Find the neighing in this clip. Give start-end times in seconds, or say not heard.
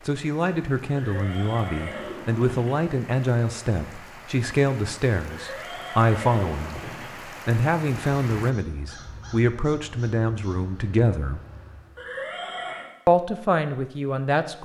0.9-2.8, 5.2-7.2, 11.9-12.9.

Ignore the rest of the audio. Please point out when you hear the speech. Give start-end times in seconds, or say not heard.
0.1-6.8, 7.5-11.4, 13.1-14.6.